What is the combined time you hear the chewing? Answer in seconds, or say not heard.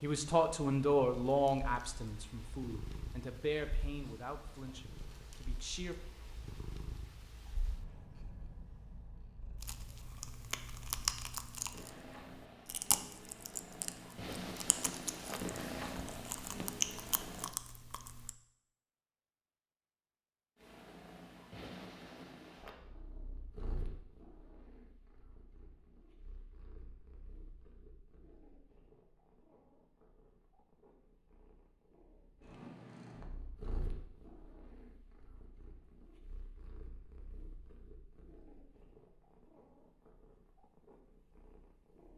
9 s.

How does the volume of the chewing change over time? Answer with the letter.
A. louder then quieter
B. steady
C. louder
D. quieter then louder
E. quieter
D.